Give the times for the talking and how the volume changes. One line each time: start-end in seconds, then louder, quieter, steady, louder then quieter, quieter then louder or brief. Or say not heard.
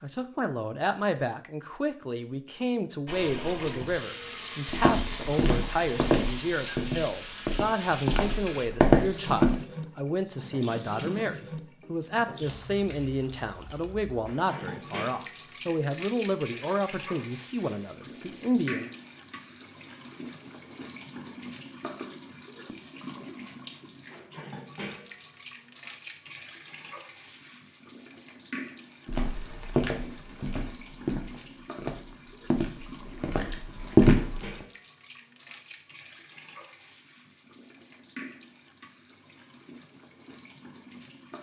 0.0-18.9 steady.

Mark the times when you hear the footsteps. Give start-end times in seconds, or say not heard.
4.7-9.6, 29.1-34.4.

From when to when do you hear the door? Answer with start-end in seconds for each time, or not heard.
not heard.